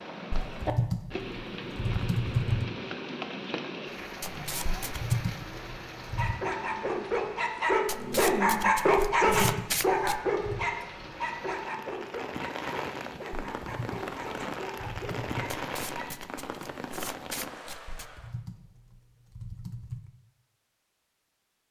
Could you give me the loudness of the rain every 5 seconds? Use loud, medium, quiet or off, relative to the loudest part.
loud, medium, loud, loud, off.